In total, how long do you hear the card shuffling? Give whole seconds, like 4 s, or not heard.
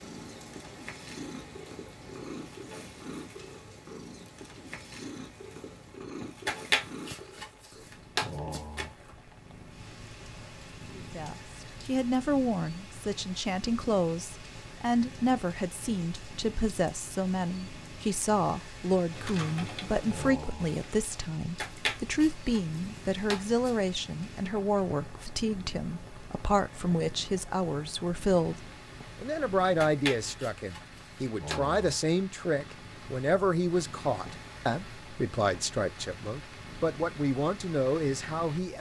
7 s.